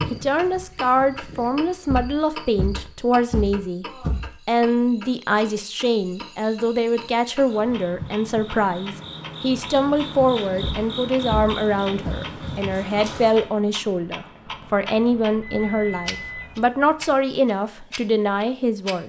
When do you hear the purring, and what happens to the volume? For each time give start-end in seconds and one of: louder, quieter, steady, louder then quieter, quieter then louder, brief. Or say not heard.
not heard.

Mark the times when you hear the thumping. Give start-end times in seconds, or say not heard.
1.9-4.3, 10.6-12.2.